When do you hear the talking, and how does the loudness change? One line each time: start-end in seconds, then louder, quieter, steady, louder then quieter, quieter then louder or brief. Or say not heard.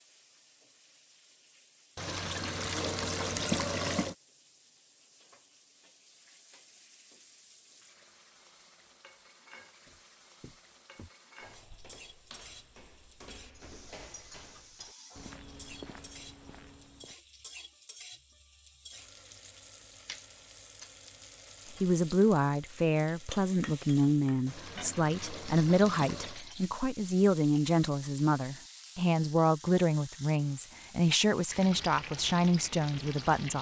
21.8-33.5 steady.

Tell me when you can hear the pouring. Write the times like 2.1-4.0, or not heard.
1.9-4.2, 24.4-26.4.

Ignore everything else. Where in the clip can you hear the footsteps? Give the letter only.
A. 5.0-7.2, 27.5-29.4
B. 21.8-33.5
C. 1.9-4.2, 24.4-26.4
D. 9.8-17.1
D.